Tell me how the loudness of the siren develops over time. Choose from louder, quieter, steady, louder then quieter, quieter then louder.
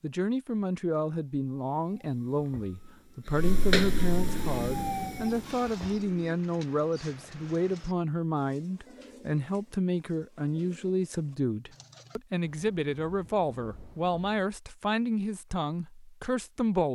louder then quieter.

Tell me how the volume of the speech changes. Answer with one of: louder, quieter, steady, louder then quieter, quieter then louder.
steady.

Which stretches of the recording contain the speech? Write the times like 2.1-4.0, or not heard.
0.0-16.9.